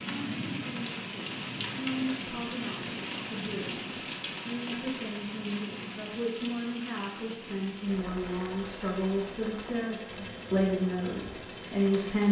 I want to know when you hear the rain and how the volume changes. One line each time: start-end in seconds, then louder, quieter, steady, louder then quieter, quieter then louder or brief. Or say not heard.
0.0-12.2 quieter.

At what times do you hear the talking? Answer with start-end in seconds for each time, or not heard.
0.0-12.2.